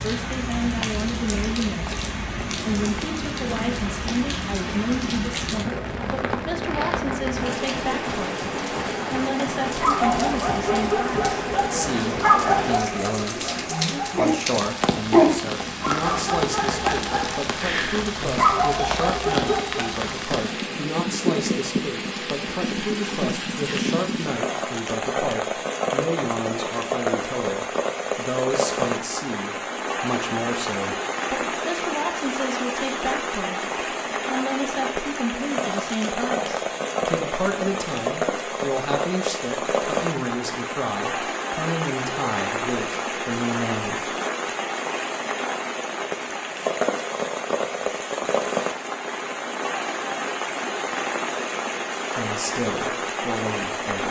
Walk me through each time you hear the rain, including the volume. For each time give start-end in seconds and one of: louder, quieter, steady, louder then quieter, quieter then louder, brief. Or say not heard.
0.0-54.0 steady.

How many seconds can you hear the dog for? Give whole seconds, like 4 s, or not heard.
10 s.